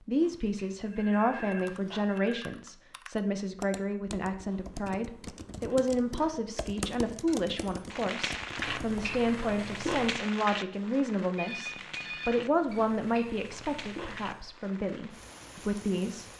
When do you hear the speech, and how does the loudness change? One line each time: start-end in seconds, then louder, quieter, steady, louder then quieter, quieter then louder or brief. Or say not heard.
0.1-16.2 steady.